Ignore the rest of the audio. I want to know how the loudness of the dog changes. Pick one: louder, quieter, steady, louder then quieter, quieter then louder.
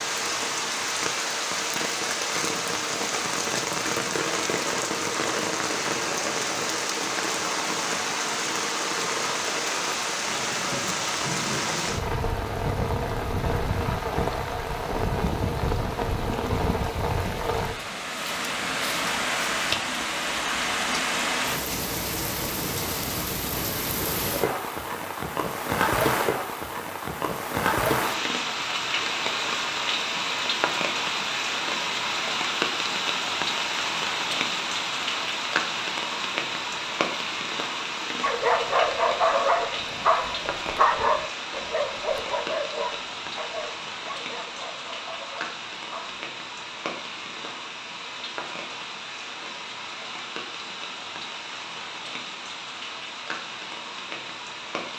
quieter.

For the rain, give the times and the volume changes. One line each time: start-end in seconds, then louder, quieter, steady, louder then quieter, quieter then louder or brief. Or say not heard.
0.0-54.9 quieter.